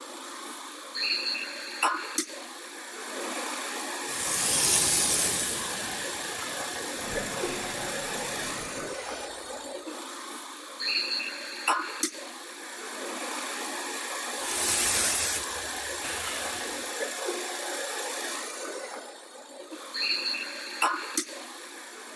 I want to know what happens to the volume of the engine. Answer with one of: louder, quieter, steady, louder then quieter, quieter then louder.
steady.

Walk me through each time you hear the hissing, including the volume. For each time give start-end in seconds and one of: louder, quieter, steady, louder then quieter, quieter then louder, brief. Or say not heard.
4.0-9.7 quieter
14.4-17.0 brief.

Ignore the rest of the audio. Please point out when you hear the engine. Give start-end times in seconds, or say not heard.
0.0-22.1.